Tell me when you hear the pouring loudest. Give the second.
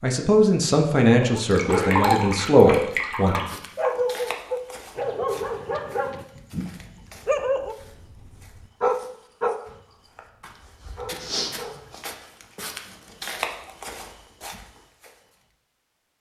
2 s.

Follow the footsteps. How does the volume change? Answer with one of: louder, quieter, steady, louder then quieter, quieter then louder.
quieter then louder.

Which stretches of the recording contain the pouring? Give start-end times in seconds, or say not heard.
1.4-3.9.